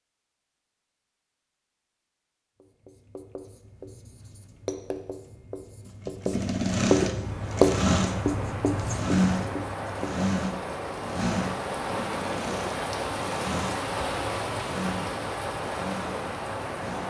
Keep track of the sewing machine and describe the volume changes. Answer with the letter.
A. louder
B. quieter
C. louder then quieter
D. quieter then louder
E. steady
B.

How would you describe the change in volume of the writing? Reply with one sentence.
The loudness of the writing goes up, then down.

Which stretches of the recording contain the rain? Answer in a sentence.
The rain can be heard from 7.0 to 17.0 s.